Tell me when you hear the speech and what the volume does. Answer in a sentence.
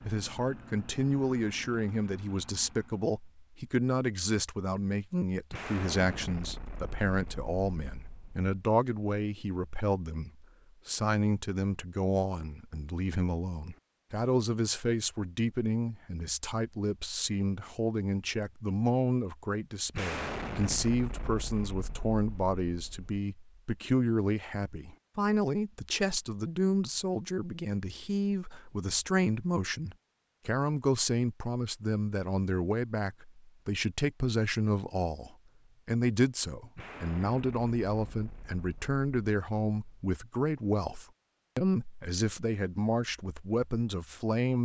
You can hear the speech from 0.0 to 44.6 s, at a steady volume.